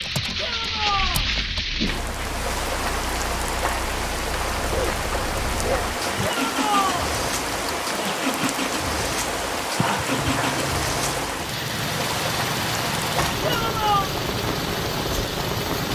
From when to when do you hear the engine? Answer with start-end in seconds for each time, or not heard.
0.0-15.9.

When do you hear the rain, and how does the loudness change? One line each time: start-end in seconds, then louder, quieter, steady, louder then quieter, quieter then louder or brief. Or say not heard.
0.0-15.9 steady.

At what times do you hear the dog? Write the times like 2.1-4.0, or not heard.
4.5-6.0, 9.8-11.2.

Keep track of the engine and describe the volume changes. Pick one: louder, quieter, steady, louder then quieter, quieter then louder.
louder.